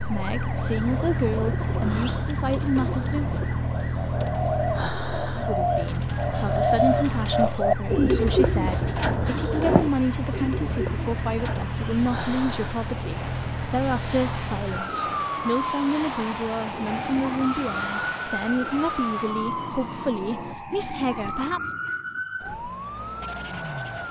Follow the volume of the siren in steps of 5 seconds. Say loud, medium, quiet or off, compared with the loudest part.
loud, loud, loud, loud, medium.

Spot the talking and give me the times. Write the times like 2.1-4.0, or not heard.
0.0-3.3, 5.3-21.7.